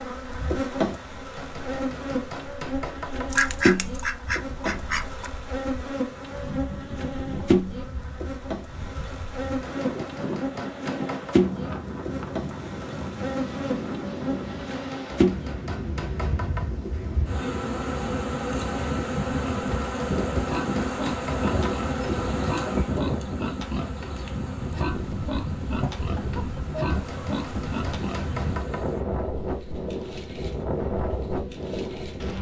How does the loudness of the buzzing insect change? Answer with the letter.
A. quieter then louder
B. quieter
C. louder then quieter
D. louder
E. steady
B.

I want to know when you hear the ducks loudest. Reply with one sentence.
The volume of the ducks peaks at 4 seconds.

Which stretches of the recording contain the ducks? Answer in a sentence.
The ducks can be heard from 3.3 to 5.3 s.